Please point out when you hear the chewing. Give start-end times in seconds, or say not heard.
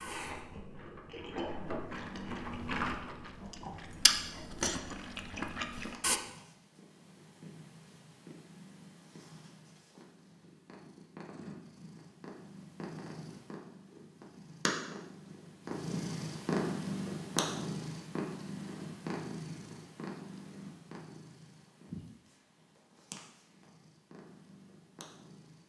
0.0-6.2.